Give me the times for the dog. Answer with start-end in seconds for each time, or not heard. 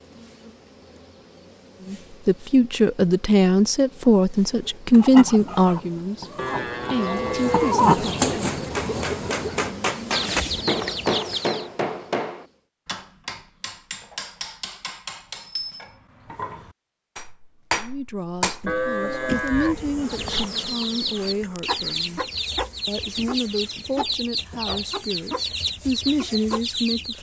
not heard.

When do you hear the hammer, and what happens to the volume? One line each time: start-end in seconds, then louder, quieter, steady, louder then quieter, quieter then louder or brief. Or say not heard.
8.4-18.9 quieter then louder.